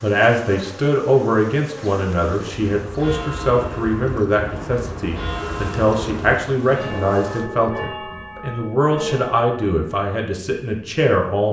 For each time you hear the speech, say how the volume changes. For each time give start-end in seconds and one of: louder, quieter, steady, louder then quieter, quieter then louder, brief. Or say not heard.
0.0-11.4 steady.